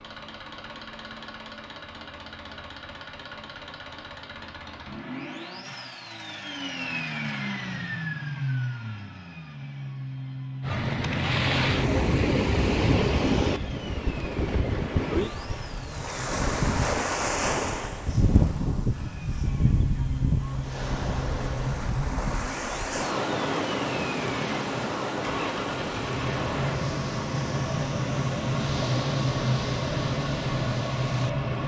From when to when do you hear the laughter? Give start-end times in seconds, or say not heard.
not heard.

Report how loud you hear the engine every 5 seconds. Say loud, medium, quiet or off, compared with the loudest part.
quiet, medium, medium, medium, medium, loud, loud.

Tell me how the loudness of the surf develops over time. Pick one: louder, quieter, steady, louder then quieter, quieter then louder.
quieter.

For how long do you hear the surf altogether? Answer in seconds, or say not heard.
21 s.